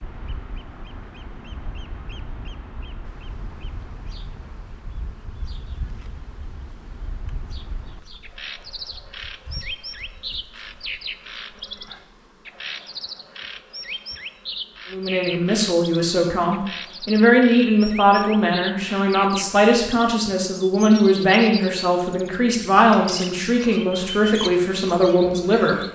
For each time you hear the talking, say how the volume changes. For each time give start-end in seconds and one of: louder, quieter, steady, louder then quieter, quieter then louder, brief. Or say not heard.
14.9-25.8 steady.